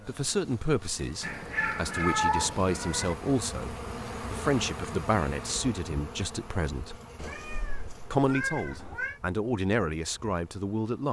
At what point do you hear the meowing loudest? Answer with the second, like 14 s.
2 s.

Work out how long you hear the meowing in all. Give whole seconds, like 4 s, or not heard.
4 s.